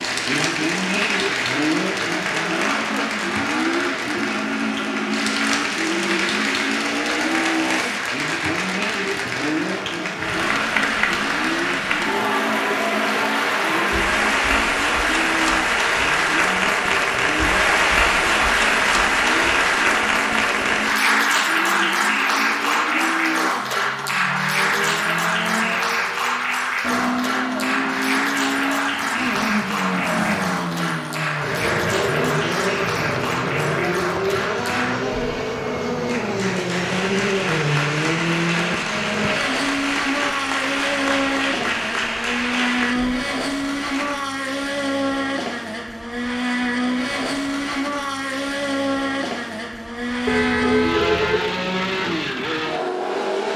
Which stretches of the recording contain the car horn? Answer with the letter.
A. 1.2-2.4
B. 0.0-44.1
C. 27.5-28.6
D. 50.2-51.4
D.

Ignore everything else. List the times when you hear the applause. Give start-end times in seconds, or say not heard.
0.0-44.1.